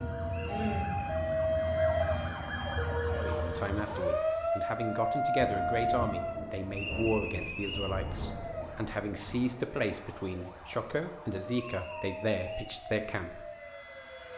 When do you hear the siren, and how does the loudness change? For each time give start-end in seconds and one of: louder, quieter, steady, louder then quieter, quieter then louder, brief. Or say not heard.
0.0-14.3 quieter.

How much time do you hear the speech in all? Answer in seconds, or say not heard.
10 s.